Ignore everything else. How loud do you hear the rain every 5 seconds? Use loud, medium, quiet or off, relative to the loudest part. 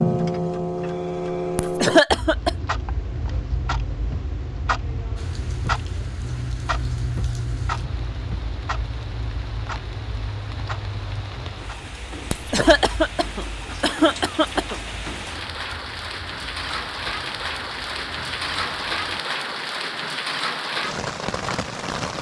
off, quiet, medium, loud, loud.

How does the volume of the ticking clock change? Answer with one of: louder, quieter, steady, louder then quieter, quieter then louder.
quieter.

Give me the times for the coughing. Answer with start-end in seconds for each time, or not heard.
1.6-2.5, 12.3-14.8.